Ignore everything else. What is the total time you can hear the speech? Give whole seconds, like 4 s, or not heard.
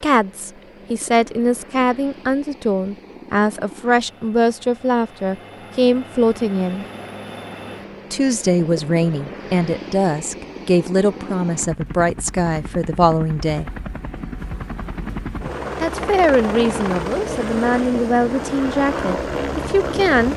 17 s.